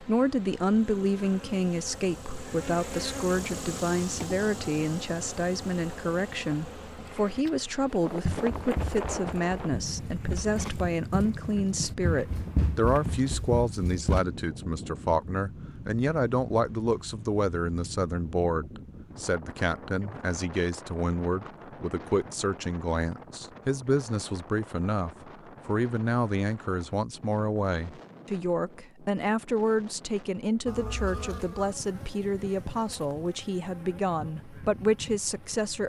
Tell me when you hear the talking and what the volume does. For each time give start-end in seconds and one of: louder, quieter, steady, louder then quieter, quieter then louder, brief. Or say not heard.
0.0-35.8 steady.